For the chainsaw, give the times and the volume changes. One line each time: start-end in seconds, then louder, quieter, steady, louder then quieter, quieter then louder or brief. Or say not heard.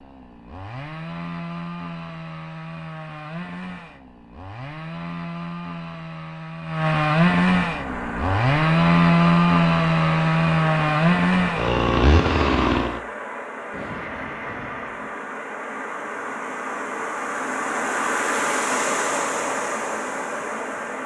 0.0-13.0 louder.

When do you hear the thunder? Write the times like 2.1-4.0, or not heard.
13.7-15.1.